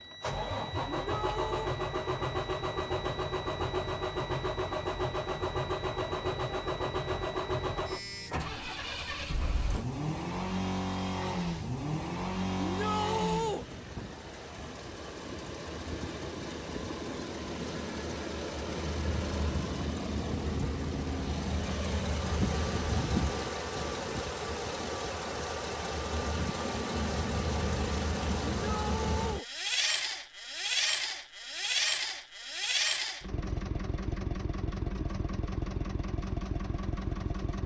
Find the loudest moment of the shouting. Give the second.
13 s.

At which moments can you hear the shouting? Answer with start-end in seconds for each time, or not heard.
0.8-1.7, 12.6-13.7, 28.6-29.4.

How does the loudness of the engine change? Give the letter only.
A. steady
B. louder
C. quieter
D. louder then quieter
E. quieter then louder
A.